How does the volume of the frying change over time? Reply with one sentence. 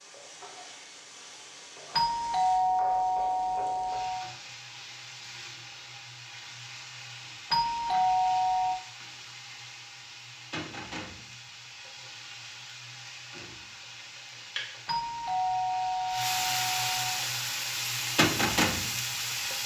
The loudness of the frying goes up.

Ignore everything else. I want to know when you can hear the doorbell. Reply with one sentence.
You can hear the doorbell from 1.9 to 4.3 s, from 7.5 to 8.8 s and from 14.8 to 17.2 s.